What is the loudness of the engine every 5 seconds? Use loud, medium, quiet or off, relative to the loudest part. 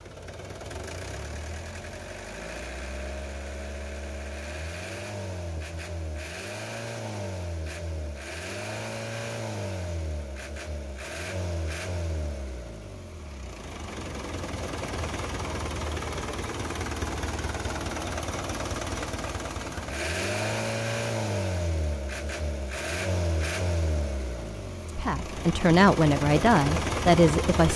medium, medium, medium, loud, loud, loud.